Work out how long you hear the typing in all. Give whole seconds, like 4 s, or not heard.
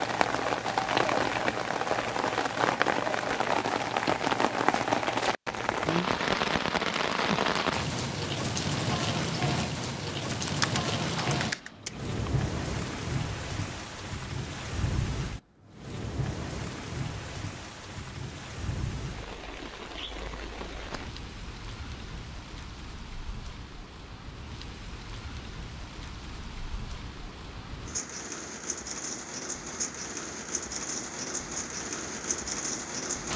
2 s.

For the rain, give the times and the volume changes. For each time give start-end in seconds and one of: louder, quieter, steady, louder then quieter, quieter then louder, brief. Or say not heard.
0.0-33.3 quieter then louder.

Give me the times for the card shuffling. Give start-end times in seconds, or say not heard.
not heard.